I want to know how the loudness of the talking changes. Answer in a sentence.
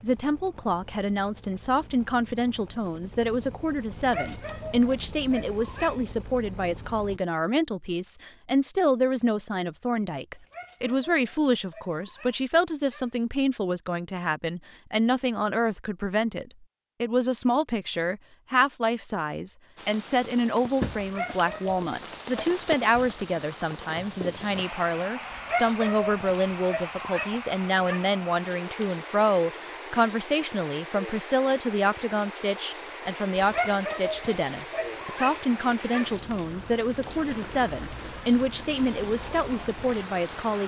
The loudness of the talking stays about the same.